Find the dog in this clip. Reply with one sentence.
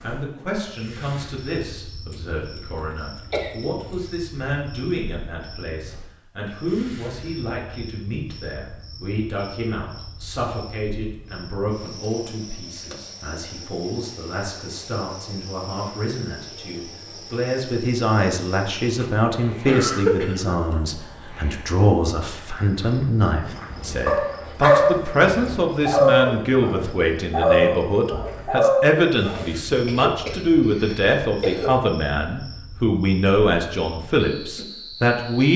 The dog can be heard from 23.8 to 29.4 s.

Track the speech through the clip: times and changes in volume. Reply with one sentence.
You can hear the speech from 0.0 to 35.5 s, getting louder.